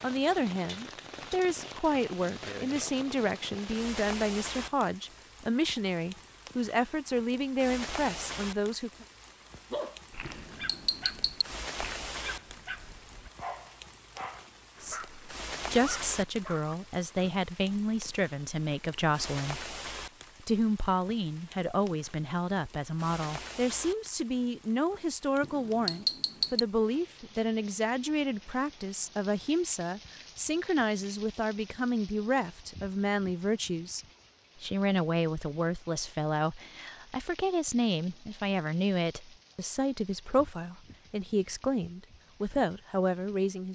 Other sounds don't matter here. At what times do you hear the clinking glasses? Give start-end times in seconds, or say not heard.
10.2-11.4, 25.4-26.6.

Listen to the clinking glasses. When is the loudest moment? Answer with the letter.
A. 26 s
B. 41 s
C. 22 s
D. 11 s
A.